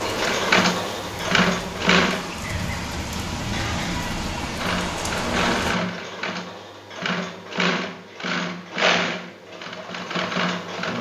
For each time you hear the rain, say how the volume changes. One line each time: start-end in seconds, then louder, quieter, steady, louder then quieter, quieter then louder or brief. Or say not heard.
0.0-5.8 louder.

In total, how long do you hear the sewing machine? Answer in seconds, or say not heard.
9 s.